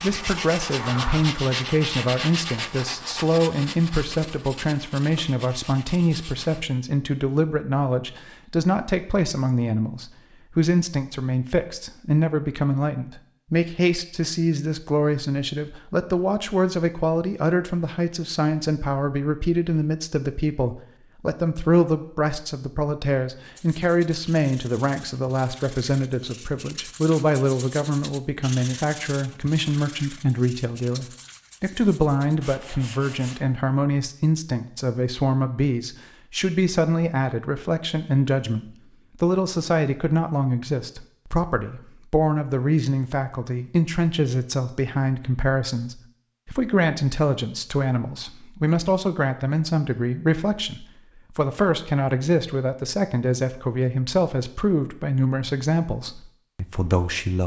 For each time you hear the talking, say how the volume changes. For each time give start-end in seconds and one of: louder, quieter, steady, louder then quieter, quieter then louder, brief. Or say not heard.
0.0-57.4 steady.